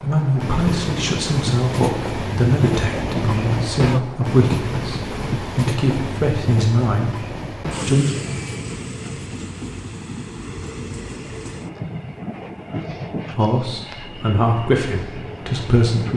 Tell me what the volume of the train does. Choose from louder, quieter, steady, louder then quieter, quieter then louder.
quieter.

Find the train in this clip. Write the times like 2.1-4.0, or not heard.
0.0-16.1.